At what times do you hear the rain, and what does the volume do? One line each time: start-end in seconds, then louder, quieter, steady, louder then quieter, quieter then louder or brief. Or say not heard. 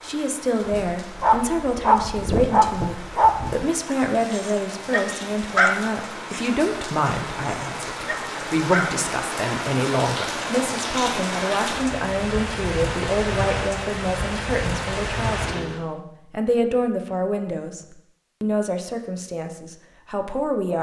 0.0-15.8 louder.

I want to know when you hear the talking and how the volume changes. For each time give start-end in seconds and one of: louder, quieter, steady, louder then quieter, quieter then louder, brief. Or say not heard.
0.0-20.7 steady.